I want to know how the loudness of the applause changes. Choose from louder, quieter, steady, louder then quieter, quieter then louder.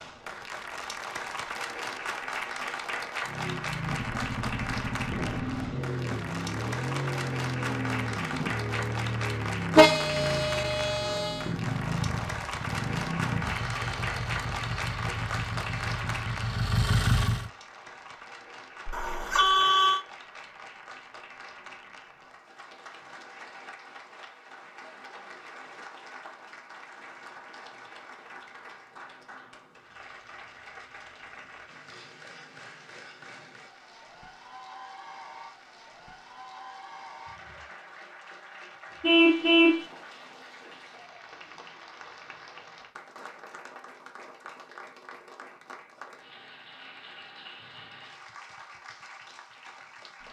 quieter.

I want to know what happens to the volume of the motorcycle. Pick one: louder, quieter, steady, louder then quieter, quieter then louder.
steady.